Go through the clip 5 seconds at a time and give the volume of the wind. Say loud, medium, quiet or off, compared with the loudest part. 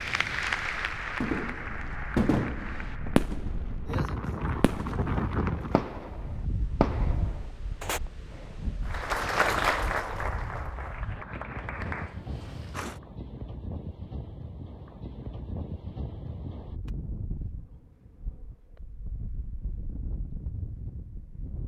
loud, loud, medium, medium, medium.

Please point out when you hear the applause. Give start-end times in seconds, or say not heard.
0.0-3.3, 8.8-12.9.